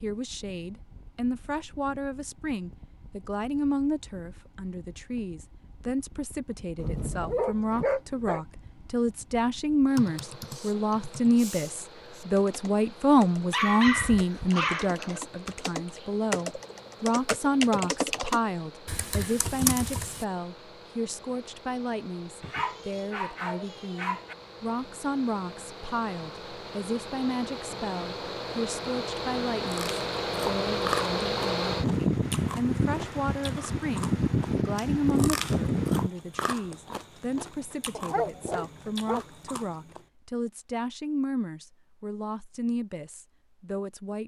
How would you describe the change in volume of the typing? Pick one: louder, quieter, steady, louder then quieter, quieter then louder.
louder.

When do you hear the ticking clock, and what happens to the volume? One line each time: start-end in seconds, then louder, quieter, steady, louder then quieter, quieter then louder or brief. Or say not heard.
not heard.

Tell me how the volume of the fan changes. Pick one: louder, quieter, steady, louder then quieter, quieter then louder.
louder.